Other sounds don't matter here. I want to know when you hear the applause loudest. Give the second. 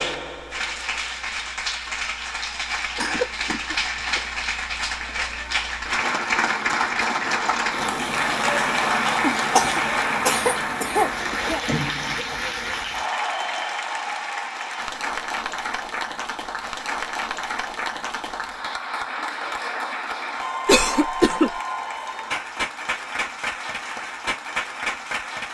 9 s.